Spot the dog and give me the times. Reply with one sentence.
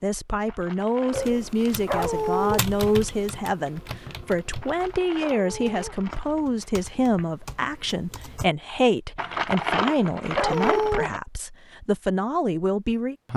The dog can be heard from 1.9 to 2.6 s, from 5.2 to 6.0 s and from 10.3 to 11.1 s.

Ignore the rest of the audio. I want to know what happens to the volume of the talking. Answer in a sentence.
The volume of the talking stays about the same.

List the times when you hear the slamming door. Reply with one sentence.
You can't hear the slamming door here.